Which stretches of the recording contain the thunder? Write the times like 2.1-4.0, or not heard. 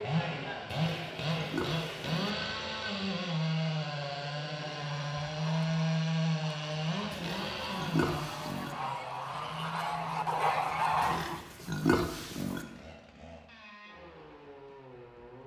not heard.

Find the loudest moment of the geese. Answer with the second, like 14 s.
11 s.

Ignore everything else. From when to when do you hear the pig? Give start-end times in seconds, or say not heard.
0.8-2.3, 7.1-8.8, 11.0-12.7.